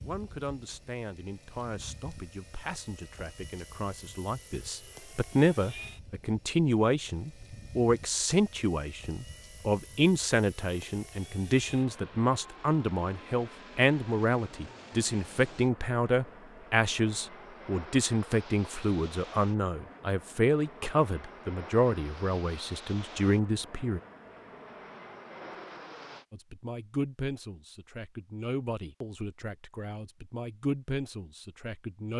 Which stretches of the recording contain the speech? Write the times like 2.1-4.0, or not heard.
0.0-24.0, 26.3-32.1.